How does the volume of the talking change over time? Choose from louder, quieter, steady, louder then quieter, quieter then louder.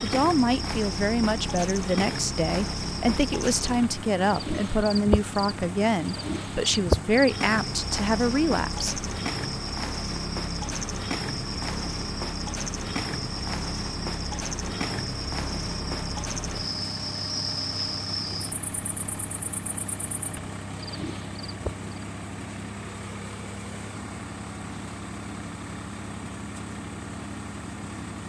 steady.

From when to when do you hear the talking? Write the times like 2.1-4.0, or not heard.
0.0-9.0.